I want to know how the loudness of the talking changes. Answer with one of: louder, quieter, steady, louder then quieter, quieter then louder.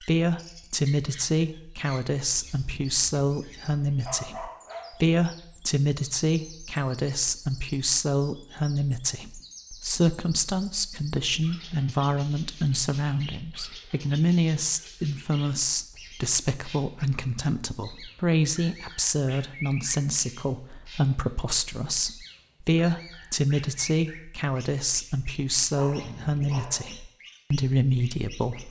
steady.